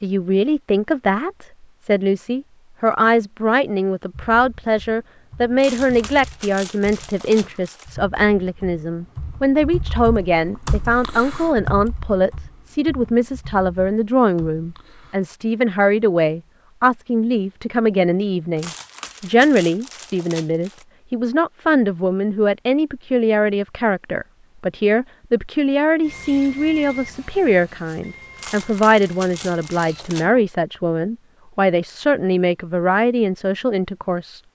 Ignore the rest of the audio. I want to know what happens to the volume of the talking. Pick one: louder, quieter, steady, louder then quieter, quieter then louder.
steady.